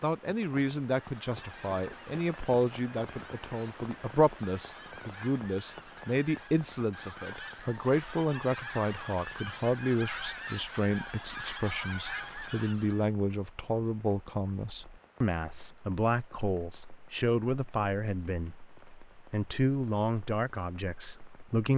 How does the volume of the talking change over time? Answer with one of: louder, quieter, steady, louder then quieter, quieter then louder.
steady.